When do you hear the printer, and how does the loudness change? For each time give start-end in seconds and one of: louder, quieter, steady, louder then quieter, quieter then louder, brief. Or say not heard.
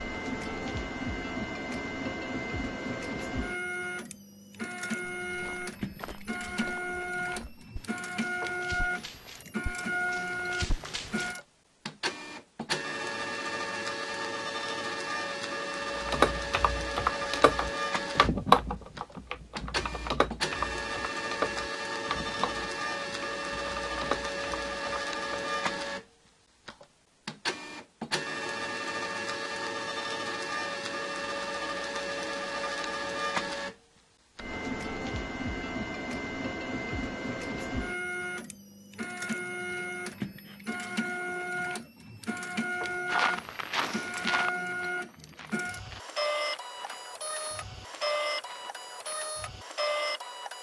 0.0-50.5 steady.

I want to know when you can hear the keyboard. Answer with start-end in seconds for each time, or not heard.
16.1-25.5.